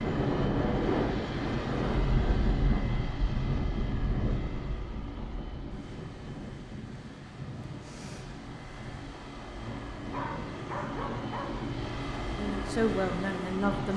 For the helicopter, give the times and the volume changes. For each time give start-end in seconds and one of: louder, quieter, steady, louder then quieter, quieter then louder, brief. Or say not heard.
0.0-13.9 quieter then louder.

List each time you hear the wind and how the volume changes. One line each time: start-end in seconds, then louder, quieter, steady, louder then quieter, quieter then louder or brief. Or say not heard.
0.0-13.9 quieter.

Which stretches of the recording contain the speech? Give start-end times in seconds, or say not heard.
12.3-13.9.